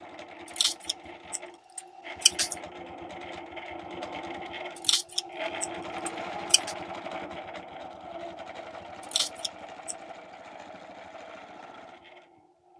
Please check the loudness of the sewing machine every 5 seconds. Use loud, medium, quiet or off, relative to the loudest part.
loud, loud, medium.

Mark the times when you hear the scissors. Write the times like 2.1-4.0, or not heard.
0.5-2.5, 4.8-6.8, 9.0-9.9.